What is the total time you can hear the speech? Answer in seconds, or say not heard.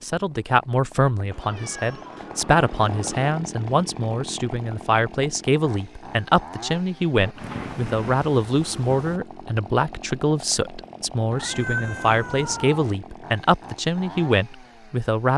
15 s.